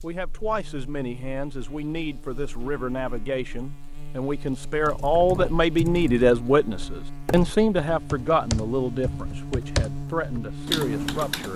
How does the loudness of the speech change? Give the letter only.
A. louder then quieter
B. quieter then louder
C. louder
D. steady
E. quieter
A.